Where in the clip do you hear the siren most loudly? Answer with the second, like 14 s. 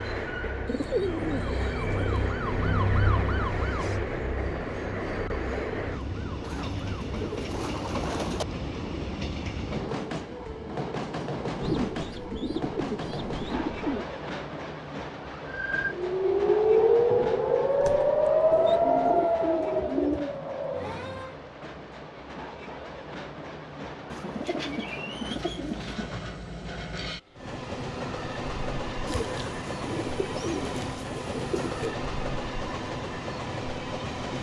17 s.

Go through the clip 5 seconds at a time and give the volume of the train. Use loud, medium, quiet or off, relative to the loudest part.
loud, loud, loud, medium, medium, loud, loud.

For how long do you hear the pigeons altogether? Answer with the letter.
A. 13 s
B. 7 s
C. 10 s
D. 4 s
A.